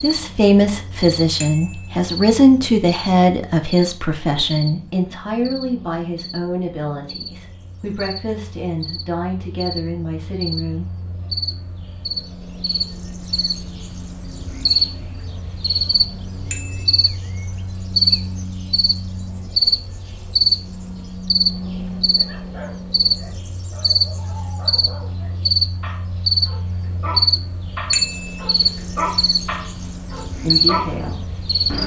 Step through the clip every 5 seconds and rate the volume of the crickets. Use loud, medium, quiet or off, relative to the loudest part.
quiet, quiet, medium, loud, loud, loud, loud.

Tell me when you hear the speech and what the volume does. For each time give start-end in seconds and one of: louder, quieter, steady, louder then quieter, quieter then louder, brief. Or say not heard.
0.0-10.9 quieter
30.4-31.8 brief.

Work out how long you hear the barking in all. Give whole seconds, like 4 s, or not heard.
9 s.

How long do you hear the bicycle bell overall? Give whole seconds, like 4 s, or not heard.
2 s.